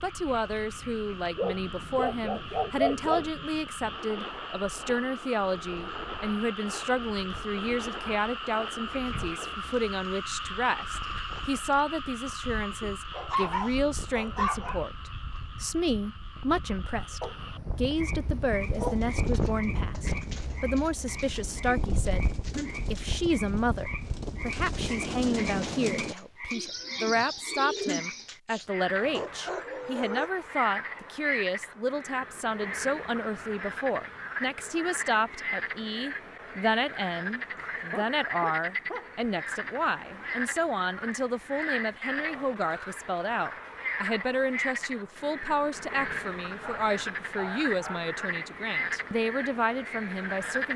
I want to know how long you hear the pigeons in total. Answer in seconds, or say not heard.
10 s.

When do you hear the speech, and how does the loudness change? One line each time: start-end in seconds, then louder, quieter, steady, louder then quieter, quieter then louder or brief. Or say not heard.
0.0-50.7 steady.